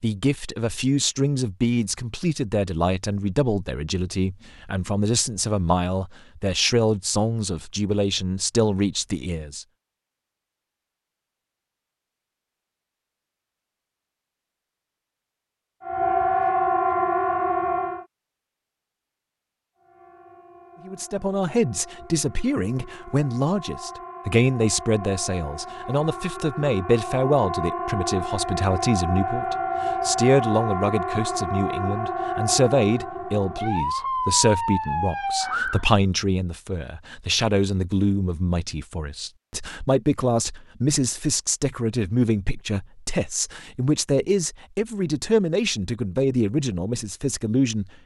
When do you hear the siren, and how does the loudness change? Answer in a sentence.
You can hear the siren briefly from 15.8 to 18.1 s; and from 19.8 to 35.9 s, getting louder.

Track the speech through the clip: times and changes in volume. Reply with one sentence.
You can hear the speech from 0.0 to 9.7 s, at a steady volume; and from 20.9 to 47.9 s, at a steady volume.